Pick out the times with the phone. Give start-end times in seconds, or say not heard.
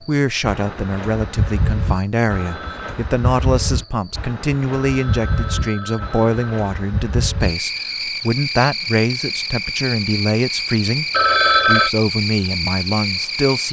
2.2-3.0, 4.7-6.7, 11.1-11.9.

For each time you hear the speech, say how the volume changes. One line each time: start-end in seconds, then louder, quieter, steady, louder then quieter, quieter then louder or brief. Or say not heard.
0.0-11.1 steady
11.7-13.6 brief.